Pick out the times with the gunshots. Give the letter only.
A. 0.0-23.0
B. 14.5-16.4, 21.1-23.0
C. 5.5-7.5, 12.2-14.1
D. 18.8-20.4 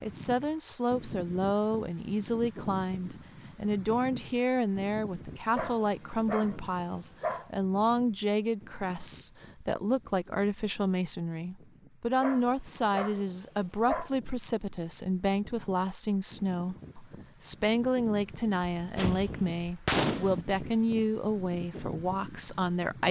D.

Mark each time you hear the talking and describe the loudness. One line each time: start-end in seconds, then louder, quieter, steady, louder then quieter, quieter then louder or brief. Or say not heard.
0.0-23.0 steady.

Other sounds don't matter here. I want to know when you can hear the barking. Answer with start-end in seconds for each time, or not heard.
5.5-7.5, 12.2-14.1.